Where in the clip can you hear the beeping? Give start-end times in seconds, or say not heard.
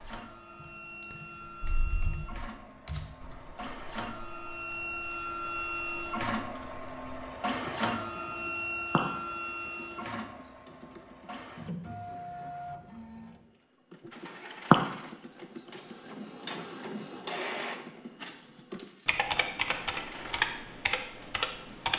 not heard.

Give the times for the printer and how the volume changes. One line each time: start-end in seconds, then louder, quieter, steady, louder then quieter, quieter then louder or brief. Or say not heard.
0.0-21.9 louder then quieter.